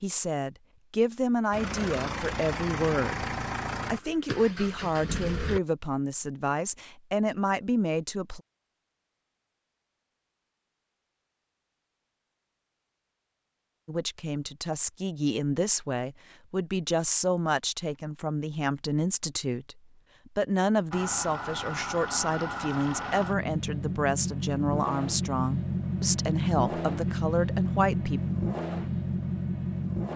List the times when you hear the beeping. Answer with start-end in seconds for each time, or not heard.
not heard.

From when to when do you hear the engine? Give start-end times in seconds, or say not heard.
1.5-5.6, 20.9-30.1.